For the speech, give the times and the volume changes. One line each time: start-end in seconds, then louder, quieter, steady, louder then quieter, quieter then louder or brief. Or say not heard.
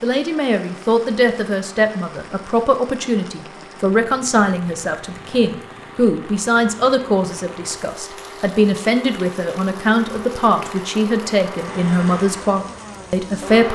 0.0-13.6 steady.